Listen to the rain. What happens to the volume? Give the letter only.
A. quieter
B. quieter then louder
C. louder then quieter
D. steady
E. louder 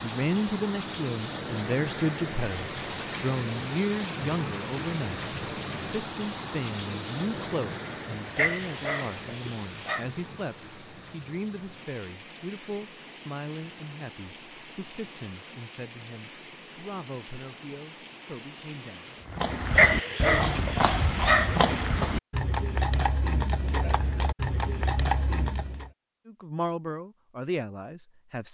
A.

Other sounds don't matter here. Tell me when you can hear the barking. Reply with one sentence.
You can hear the barking from 8.3 to 10.1 s and from 19.8 to 21.9 s.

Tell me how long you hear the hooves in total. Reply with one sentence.
The hooves can be heard for 7 seconds in total.